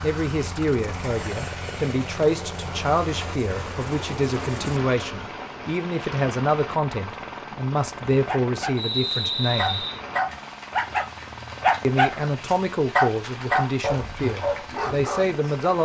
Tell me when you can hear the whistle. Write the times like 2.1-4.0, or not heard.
8.8-10.0.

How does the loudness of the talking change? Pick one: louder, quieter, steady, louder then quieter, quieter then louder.
steady.